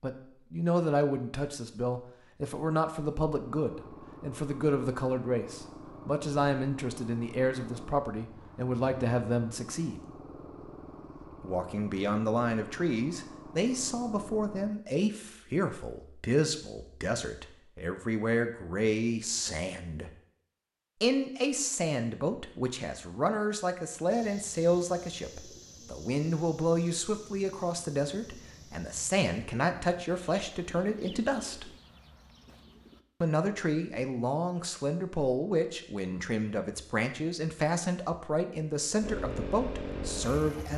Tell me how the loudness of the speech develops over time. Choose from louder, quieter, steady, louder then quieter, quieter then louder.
steady.